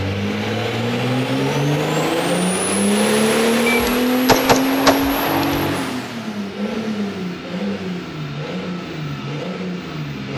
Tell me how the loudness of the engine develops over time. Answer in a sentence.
The loudness of the engine goes down.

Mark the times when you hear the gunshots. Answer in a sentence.
You can hear the gunshots from 3.6 to 5.7 s.